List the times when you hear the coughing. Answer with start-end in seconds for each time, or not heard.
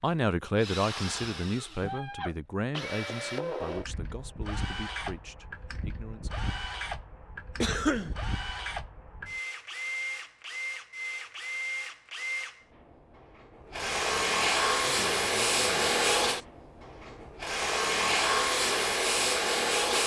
7.6-8.2.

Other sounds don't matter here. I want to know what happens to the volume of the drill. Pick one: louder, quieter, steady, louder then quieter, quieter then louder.
louder.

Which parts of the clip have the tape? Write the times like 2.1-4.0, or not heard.
not heard.